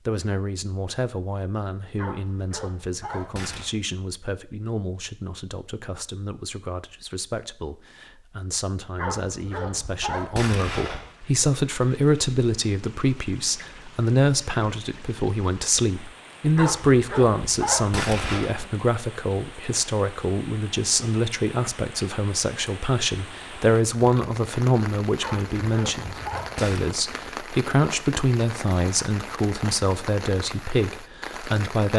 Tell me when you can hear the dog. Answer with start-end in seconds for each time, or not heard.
1.9-3.7, 8.9-11.1, 16.6-18.6, 25.2-26.9.